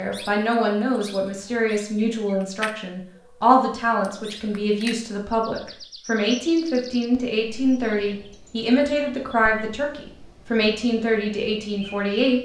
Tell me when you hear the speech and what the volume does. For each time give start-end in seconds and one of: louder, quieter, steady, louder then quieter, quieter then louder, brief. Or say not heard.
0.0-12.4 steady.